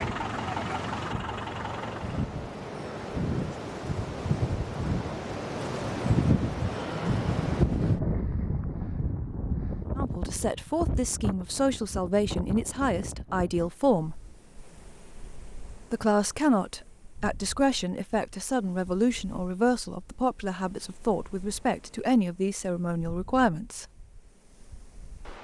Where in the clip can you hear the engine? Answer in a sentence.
The engine can be heard from 0.0 to 2.2 s.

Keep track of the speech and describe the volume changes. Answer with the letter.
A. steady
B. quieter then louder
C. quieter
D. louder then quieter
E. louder
A.